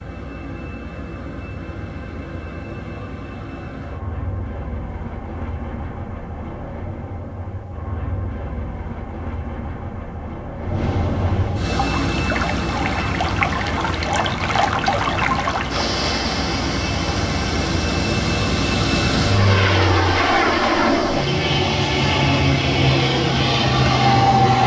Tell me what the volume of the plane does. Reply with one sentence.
The volume of the plane goes up.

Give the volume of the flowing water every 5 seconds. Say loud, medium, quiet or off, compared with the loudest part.
off, off, loud, loud, medium.